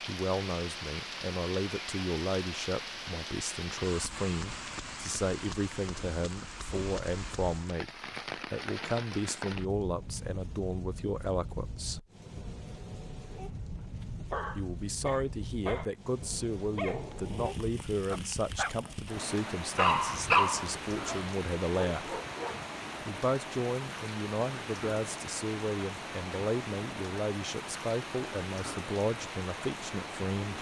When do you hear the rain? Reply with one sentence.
You can hear the rain from 0.0 to 30.5 s.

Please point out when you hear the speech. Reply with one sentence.
The speech can be heard from 0.1 to 12.1 s, from 14.6 to 22.2 s and from 23.1 to 30.5 s.